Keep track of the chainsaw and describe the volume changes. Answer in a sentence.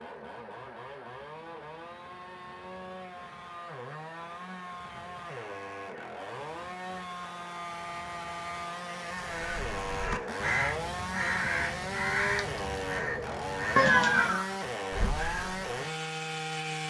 The volume of the chainsaw goes up.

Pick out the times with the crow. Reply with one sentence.
You can hear the crow from 9.2 to 15.6 s.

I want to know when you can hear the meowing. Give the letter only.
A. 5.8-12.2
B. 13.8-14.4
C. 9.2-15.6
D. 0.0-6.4
B.